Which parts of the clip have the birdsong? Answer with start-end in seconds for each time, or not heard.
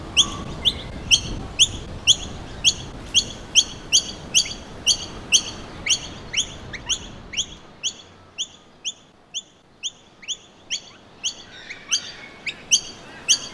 0.0-13.4.